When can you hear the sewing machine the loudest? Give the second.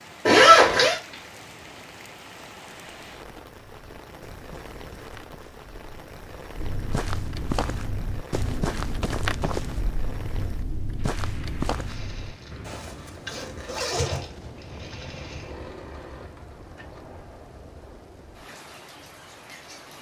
14 s.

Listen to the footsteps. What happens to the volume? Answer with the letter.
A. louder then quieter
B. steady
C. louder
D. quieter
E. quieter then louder
C.